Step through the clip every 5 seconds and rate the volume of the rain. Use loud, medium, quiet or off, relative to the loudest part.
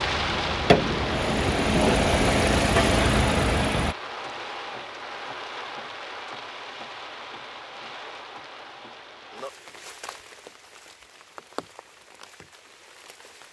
loud, medium, quiet.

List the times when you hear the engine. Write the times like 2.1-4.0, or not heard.
0.0-4.0.